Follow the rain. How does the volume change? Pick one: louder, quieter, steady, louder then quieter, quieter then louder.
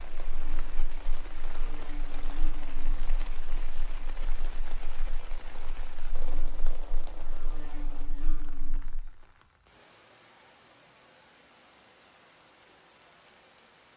quieter.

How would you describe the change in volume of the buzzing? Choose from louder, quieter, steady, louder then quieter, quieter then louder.
quieter then louder.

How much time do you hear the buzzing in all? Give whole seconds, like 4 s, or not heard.
9 s.